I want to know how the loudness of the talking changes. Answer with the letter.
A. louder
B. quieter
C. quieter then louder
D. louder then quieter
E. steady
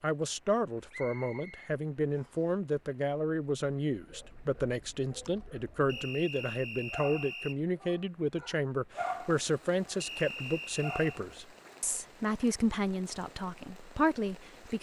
E.